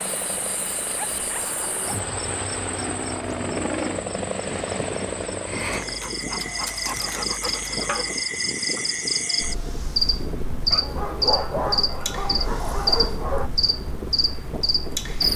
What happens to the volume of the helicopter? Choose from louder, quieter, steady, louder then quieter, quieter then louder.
louder.